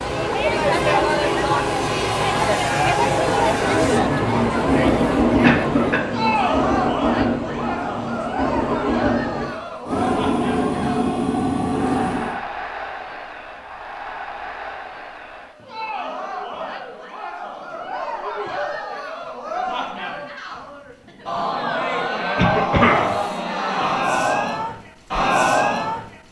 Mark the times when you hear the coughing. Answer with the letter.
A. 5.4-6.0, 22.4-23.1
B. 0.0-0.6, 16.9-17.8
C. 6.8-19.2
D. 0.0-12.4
A.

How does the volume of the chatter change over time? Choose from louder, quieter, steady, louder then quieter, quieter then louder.
quieter then louder.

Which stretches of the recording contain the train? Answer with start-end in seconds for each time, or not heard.
0.0-12.4.